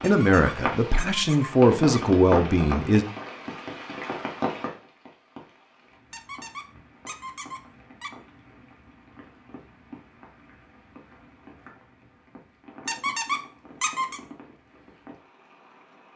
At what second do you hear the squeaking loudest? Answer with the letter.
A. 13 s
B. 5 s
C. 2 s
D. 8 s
A.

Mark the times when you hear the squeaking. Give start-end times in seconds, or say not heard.
0.0-2.0, 6.1-8.1, 12.8-14.2.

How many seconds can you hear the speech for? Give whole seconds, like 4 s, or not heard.
3 s.